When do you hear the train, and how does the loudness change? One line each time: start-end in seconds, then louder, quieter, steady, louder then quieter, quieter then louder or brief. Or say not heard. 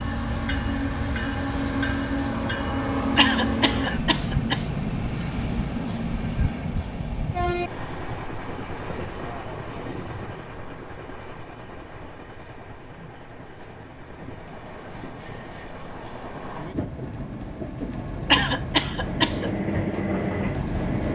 0.0-21.1 quieter then louder.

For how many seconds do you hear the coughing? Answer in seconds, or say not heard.
3 s.